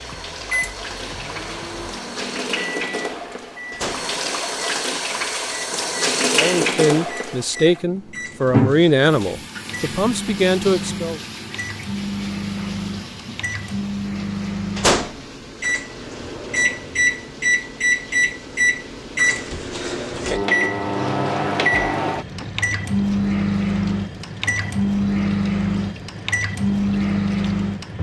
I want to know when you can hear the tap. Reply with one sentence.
You can hear the tap from 0.0 to 27.9 s.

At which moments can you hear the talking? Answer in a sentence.
The talking can be heard from 6.3 to 11.2 s.